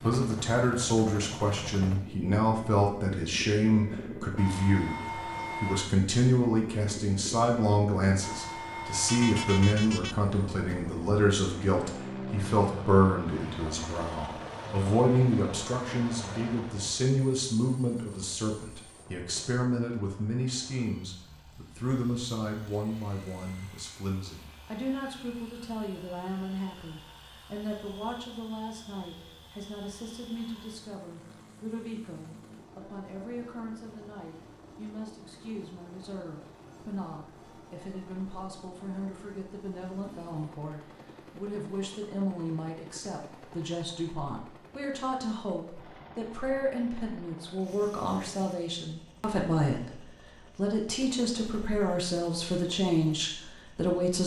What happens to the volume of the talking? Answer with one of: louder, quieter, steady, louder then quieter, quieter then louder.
quieter then louder.